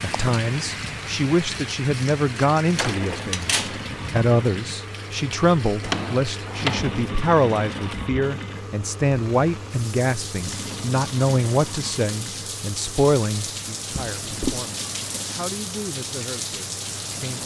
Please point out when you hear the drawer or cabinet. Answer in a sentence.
The drawer or cabinet can be heard from 2.8 to 3.8 s, from 5.8 to 7.0 s and from 13.9 to 14.7 s.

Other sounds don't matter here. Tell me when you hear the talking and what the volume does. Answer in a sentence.
The talking can be heard from 0.0 to 17.4 s, getting quieter.